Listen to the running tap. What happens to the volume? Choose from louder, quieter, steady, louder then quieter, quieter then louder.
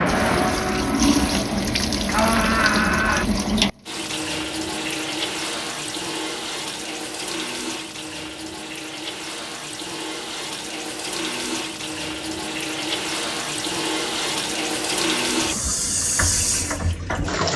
quieter then louder.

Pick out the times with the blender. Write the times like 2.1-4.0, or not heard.
0.0-3.2.